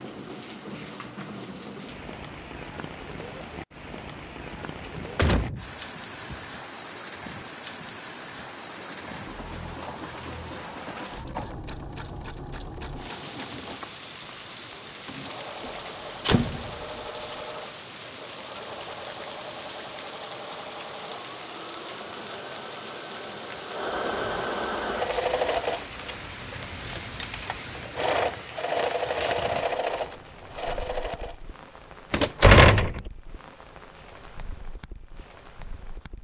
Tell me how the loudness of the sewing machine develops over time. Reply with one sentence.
The loudness of the sewing machine goes up.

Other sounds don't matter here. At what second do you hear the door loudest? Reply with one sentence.
The loudest moment of the door is at 33 seconds.